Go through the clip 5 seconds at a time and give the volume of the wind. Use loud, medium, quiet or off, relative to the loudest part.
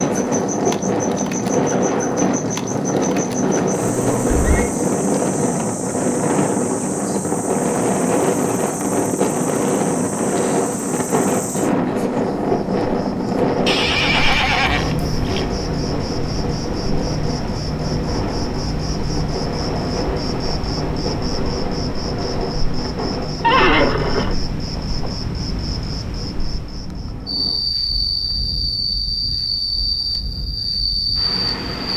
loud, loud, loud, medium, medium, quiet, quiet.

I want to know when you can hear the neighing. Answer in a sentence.
The neighing can be heard from 3.8 to 4.7 s, from 13.7 to 15.4 s and from 23.4 to 25.1 s.